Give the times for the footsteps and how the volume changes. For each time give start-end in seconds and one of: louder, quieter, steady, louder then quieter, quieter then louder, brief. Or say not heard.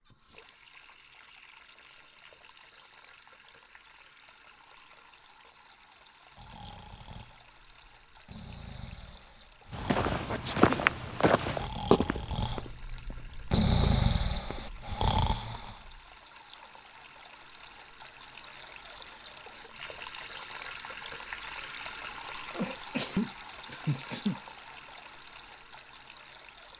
9.7-14.8 quieter then louder.